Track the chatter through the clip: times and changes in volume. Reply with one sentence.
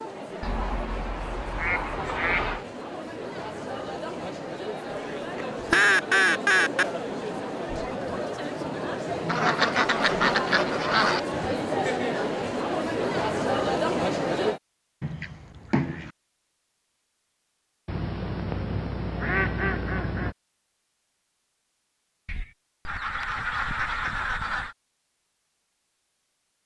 The chatter can be heard from 0.0 to 14.6 s, getting louder.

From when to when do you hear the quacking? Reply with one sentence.
The quacking can be heard from 0.4 to 2.6 s, from 4.9 to 6.8 s, from 9.2 to 11.2 s, from 15.0 to 16.1 s, from 17.9 to 20.4 s and from 22.2 to 24.8 s.